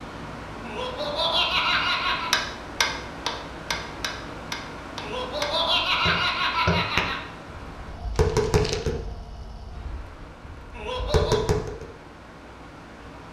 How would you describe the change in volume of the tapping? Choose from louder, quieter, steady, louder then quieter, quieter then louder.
quieter then louder.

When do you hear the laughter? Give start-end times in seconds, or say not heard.
0.7-2.3, 5.0-7.2, 10.7-11.4.